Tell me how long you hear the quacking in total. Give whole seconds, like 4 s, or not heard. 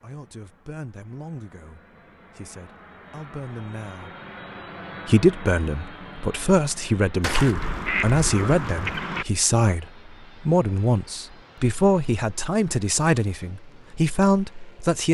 2 s.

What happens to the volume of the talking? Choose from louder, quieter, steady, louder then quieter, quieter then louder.
louder.